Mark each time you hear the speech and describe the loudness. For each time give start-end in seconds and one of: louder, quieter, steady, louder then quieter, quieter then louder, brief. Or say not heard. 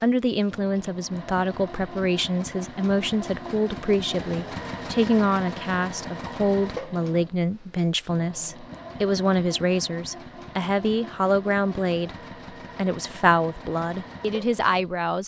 0.0-12.2 steady
12.8-15.2 brief.